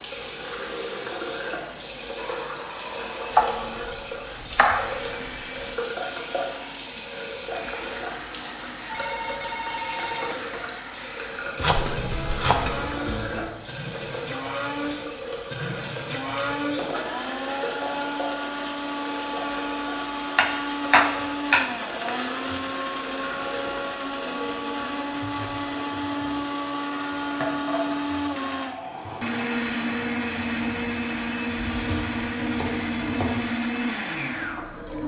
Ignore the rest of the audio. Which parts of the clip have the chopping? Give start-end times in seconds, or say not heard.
3.3-5.7, 11.6-13.5, 20.4-22.6, 31.6-33.5.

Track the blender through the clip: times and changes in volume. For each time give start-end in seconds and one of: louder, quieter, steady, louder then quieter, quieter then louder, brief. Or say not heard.
0.0-35.0 louder.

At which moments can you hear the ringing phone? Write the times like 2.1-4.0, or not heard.
8.8-10.7.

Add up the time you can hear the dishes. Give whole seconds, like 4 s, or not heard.
not heard.